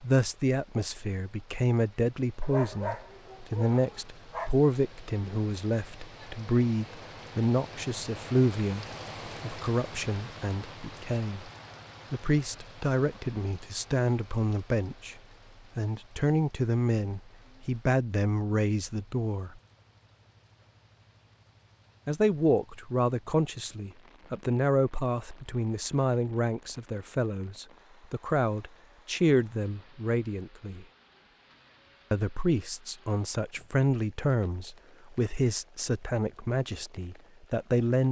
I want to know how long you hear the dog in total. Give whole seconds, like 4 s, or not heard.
2 s.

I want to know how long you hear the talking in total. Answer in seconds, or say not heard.
33 s.